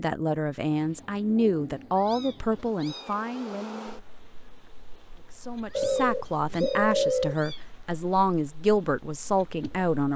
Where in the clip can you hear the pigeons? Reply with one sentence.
You can hear the pigeons from 0.7 to 2.8 s and from 5.8 to 7.3 s.